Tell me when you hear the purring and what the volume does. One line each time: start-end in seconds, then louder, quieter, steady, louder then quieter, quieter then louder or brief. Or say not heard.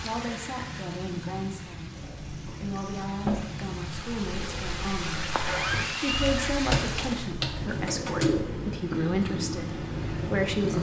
0.0-10.7 louder.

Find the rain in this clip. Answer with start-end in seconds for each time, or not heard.
0.0-7.4.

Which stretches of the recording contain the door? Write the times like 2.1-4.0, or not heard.
1.9-3.4, 5.5-6.5.